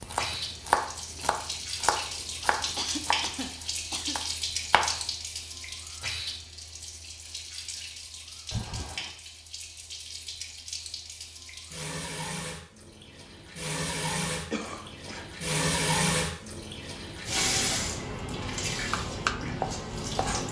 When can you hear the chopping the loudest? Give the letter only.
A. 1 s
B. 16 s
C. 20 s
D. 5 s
A.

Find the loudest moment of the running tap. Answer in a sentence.
The loudest moment of the running tap is at 16 seconds.